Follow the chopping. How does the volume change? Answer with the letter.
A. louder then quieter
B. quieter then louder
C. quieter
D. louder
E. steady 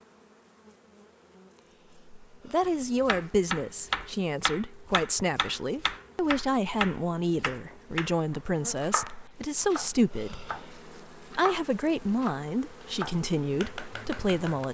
C.